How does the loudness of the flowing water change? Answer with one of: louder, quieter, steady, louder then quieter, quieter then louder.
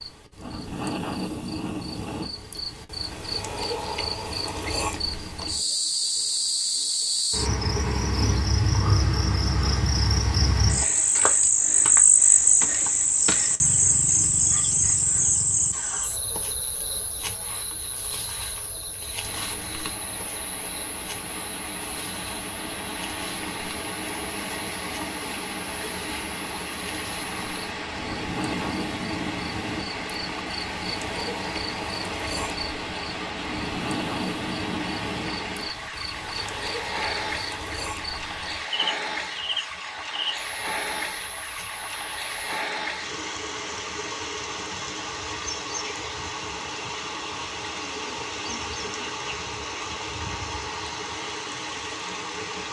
steady.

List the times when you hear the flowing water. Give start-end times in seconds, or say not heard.
19.2-52.6.